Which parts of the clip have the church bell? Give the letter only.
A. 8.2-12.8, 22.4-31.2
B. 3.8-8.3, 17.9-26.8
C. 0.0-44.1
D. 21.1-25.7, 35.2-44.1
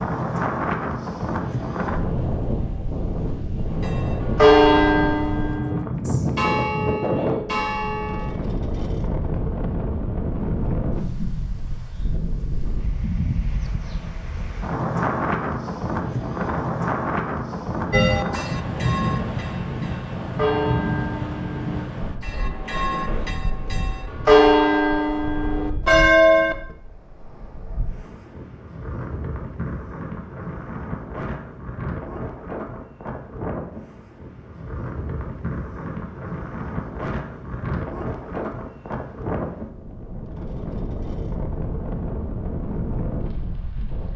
B.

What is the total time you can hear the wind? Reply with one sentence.
The wind can be heard for 44 seconds in total.